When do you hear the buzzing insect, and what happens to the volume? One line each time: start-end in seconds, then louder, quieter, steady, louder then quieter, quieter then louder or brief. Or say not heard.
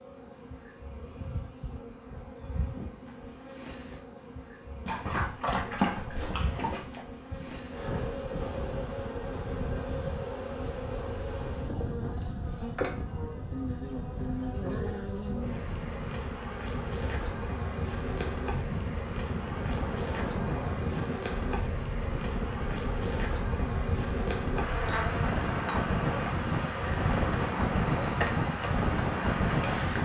0.0-30.0 louder.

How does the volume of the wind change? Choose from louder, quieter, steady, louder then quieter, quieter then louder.
louder.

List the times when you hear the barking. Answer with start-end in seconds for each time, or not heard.
4.8-7.0.